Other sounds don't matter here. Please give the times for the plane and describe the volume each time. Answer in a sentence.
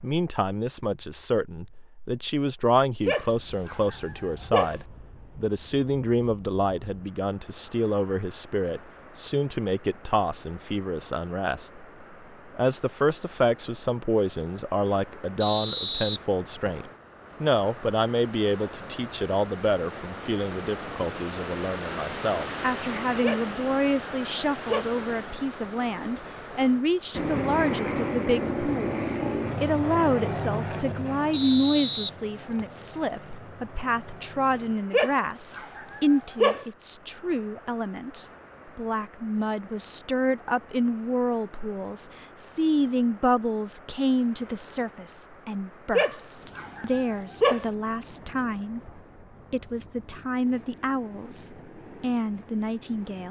The plane can be heard from 27.1 to 34.8 s, getting quieter.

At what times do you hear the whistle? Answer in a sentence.
You can hear the whistle from 15.4 to 16.9 s and from 31.3 to 32.6 s.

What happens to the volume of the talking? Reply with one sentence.
The volume of the talking stays about the same.